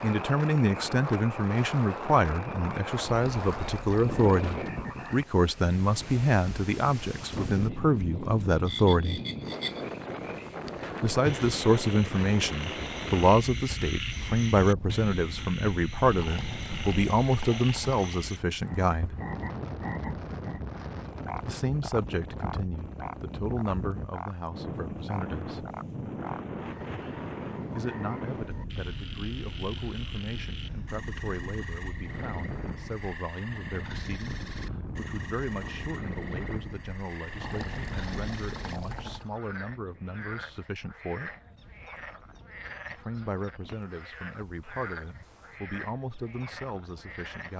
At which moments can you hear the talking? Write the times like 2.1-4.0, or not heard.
0.0-9.2, 11.0-19.1, 21.4-25.6, 27.7-41.4, 42.9-47.5.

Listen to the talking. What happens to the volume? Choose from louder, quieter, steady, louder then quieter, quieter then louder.
quieter.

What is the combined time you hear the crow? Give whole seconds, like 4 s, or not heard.
not heard.